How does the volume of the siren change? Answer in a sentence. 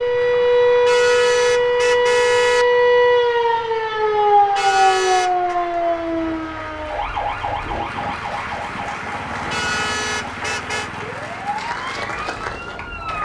The loudness of the siren goes down.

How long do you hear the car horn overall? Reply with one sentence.
The car horn can be heard for 4 seconds in total.